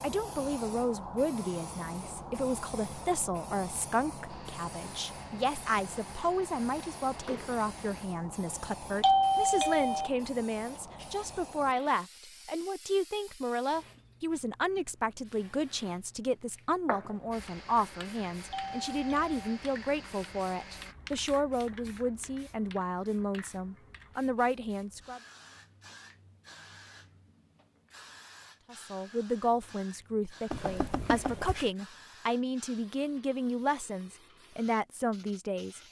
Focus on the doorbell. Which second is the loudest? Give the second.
9 s.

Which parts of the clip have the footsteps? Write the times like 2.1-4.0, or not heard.
not heard.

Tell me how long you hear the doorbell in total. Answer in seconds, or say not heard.
3 s.